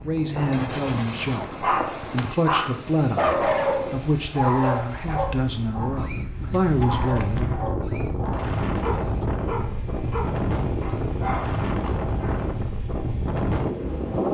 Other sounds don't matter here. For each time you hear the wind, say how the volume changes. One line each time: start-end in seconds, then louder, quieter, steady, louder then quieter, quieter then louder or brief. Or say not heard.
0.0-14.3 louder.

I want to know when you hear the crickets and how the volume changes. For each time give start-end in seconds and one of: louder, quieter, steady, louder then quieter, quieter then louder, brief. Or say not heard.
not heard.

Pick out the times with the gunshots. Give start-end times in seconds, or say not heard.
0.3-2.4.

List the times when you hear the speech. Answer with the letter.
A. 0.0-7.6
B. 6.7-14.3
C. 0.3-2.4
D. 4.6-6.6
A.